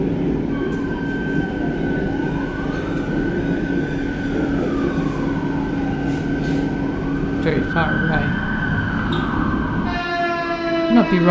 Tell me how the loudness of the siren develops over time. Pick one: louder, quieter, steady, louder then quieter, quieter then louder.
louder.